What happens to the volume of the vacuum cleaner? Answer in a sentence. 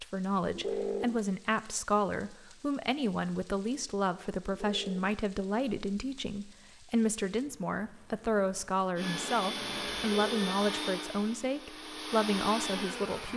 The loudness of the vacuum cleaner goes down, then up.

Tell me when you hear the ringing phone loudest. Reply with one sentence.
The loudest moment of the ringing phone is at 1 second.